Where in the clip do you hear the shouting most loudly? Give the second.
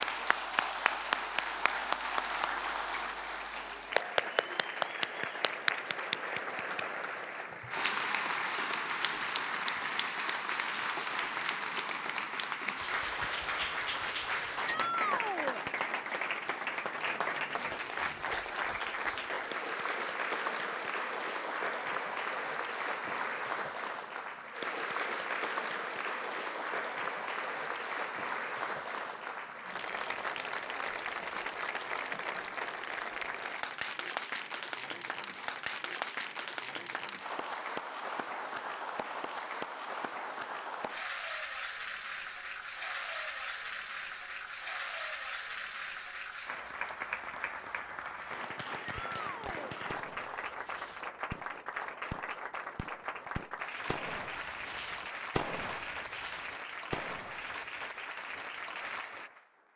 15 s.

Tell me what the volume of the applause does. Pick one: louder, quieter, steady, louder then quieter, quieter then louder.
quieter.